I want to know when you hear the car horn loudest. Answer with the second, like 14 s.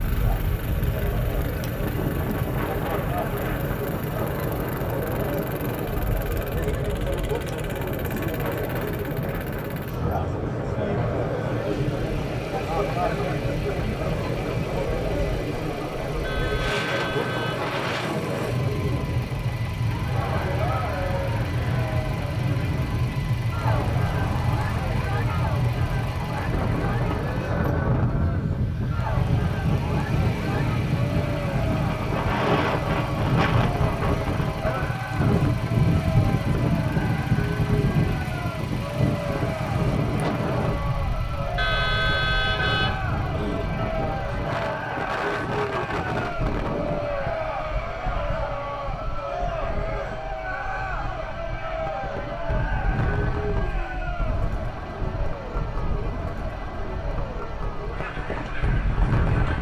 42 s.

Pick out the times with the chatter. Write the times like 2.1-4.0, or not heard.
0.0-59.5.